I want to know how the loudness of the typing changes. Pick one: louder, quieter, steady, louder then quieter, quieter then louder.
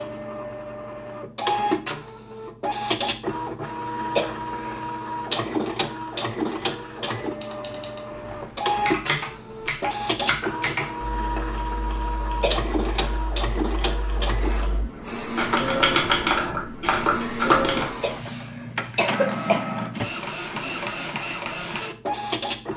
quieter then louder.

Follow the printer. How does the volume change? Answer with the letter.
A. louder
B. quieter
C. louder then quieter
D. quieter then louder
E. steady
E.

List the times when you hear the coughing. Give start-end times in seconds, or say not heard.
4.2-4.8, 12.4-13.2, 18.0-19.6.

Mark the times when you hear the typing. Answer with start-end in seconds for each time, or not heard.
7.3-17.9.